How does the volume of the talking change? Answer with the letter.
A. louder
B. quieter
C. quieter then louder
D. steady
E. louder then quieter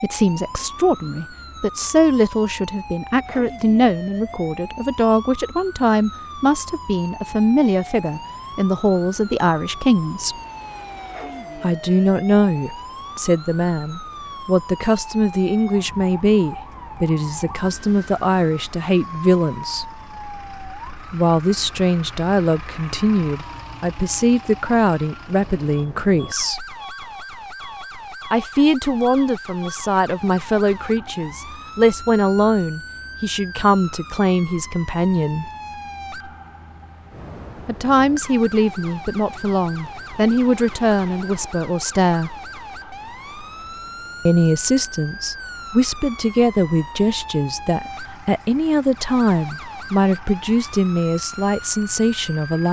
D.